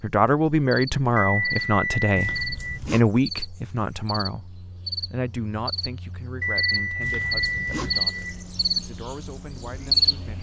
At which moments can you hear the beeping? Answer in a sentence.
The beeping can be heard from 1.1 to 2.7 s and from 6.4 to 8.3 s.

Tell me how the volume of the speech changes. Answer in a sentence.
The volume of the speech goes down.